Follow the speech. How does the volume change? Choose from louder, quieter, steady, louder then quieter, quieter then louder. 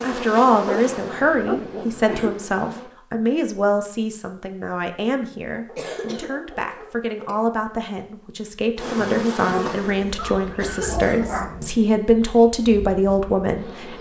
quieter then louder.